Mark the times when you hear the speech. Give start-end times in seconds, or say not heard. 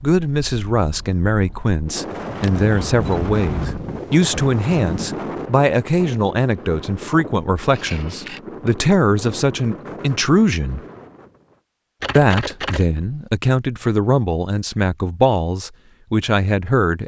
0.0-10.8, 12.2-17.0.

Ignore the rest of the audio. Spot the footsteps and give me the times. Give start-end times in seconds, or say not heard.
not heard.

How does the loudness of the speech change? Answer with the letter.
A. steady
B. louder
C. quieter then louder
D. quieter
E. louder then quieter
A.